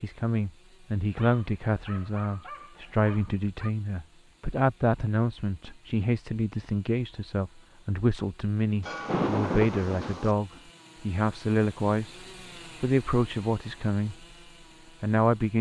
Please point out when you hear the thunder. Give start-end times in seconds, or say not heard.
8.8-10.3.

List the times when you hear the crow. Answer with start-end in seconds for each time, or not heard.
not heard.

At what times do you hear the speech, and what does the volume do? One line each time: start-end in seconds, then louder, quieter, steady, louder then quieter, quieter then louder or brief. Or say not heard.
0.0-12.2 steady
12.8-14.2 brief
15.0-15.5 brief.